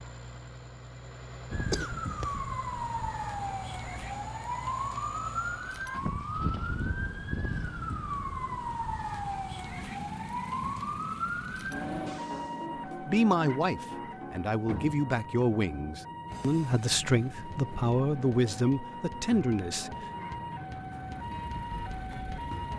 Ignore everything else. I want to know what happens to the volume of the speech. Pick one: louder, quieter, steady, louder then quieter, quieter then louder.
steady.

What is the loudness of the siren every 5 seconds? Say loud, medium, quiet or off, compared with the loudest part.
loud, loud, loud, medium, loud.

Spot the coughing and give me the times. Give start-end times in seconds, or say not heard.
1.7-2.4.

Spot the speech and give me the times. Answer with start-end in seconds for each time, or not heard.
13.0-19.9.